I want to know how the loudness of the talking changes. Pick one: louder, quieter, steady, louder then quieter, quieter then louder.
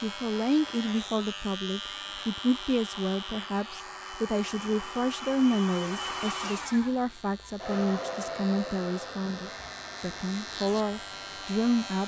steady.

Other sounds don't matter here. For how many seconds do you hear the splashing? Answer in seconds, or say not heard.
not heard.